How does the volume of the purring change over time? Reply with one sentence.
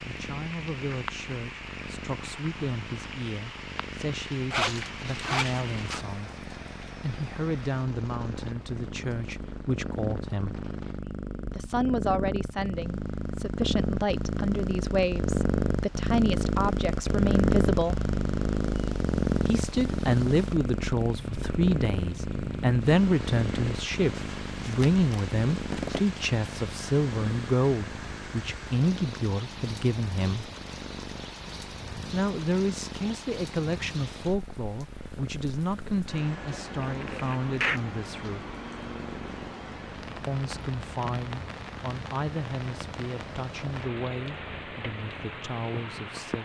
The volume of the purring goes up, then down.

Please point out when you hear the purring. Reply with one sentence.
You can hear the purring from 0.0 to 46.4 s.